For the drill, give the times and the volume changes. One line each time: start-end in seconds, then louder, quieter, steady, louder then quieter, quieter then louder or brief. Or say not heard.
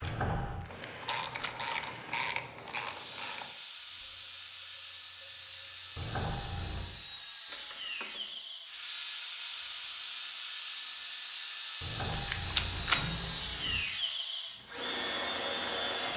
0.0-16.1 louder.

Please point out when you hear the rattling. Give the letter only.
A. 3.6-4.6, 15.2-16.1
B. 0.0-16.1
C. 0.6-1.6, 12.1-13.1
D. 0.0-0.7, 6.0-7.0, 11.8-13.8
C.